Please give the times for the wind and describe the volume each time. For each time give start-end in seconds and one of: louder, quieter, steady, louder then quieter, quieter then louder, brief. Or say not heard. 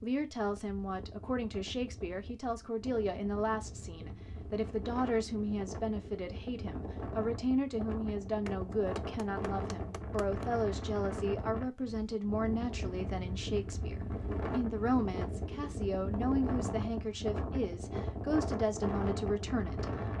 0.0-20.1 louder.